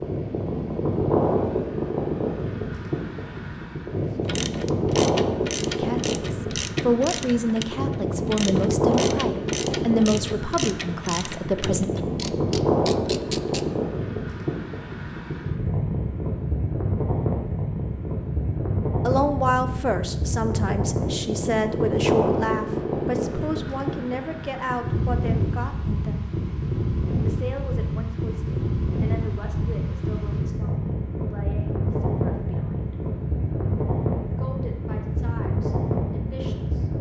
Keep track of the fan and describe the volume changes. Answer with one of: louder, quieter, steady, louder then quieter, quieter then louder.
steady.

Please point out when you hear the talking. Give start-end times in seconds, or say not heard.
5.8-11.9, 19.1-26.3, 27.2-33.0, 34.4-36.9.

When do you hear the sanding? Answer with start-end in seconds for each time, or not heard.
not heard.